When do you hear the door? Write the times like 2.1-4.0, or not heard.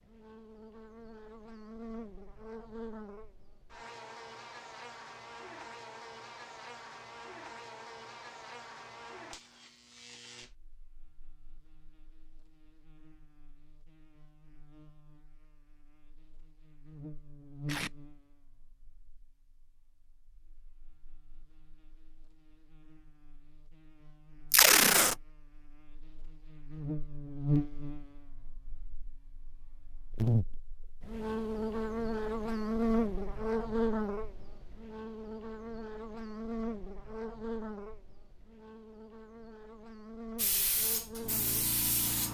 not heard.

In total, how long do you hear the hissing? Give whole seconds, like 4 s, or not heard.
2 s.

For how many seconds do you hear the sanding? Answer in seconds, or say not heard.
not heard.